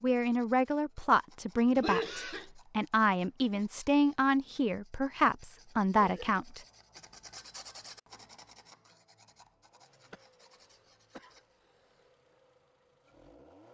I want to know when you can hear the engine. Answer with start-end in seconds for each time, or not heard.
9.6-13.6.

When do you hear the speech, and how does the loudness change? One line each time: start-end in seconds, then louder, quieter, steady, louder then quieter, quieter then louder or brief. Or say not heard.
0.0-6.6 steady.